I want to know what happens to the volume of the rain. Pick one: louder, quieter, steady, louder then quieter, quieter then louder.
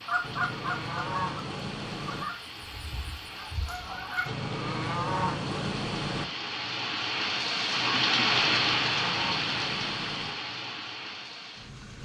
louder then quieter.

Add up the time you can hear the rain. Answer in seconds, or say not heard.
12 s.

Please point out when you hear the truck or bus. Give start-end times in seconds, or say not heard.
not heard.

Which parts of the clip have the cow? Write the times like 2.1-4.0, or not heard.
0.2-2.2, 4.2-6.2, 8.3-10.3.